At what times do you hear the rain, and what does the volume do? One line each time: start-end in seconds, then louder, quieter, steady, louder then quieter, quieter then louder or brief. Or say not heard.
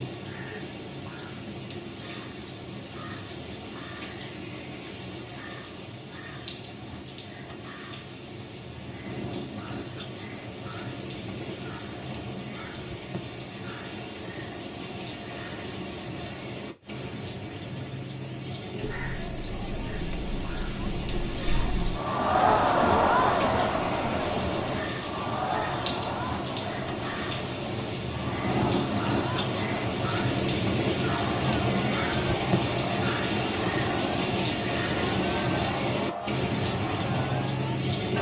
0.0-38.1 louder.